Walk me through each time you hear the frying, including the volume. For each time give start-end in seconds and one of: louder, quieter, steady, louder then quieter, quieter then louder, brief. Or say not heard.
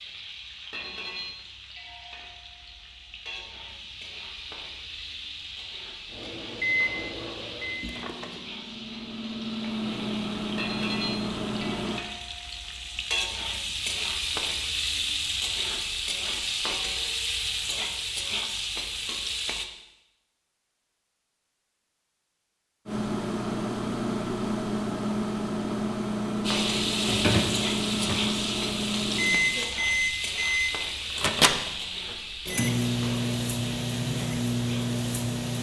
0.0-19.6 louder
26.4-35.5 quieter.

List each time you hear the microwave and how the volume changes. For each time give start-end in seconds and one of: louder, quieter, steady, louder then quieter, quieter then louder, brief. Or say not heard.
6.1-12.1 quieter then louder
22.9-35.5 steady.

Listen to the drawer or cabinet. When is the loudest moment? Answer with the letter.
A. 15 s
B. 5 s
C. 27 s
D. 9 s
C.